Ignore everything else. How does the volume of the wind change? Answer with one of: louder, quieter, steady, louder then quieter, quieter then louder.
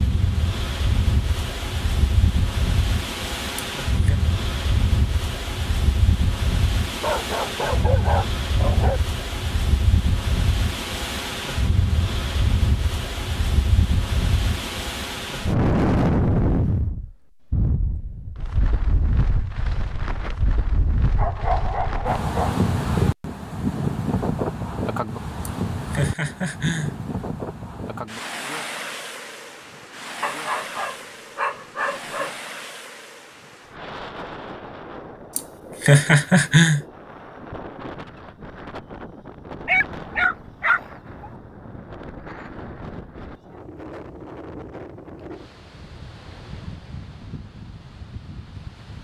quieter.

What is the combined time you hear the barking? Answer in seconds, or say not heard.
7 s.